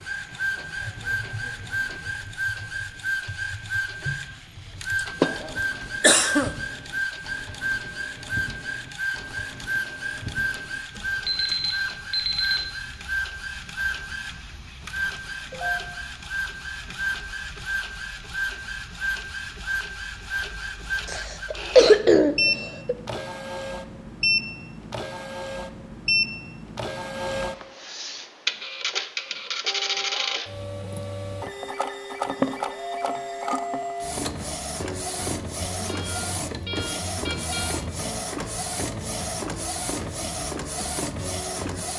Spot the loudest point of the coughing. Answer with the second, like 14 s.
22 s.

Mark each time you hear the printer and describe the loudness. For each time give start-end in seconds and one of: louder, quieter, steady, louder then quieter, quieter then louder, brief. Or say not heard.
0.0-41.9 steady.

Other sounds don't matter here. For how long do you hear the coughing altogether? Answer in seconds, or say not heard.
3 s.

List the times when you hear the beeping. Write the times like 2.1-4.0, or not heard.
11.2-12.7, 35.8-37.8.